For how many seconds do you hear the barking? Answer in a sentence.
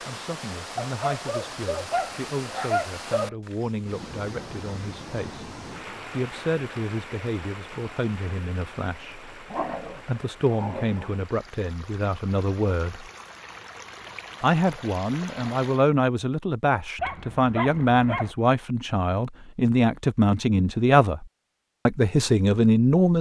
You can hear the barking for 6 seconds altogether.